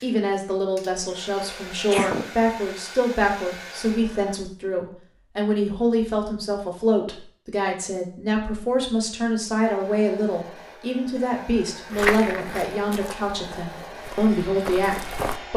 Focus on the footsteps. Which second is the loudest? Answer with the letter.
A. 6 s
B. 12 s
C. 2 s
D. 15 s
B.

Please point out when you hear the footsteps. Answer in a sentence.
The footsteps can be heard from 11.9 to 15.4 s.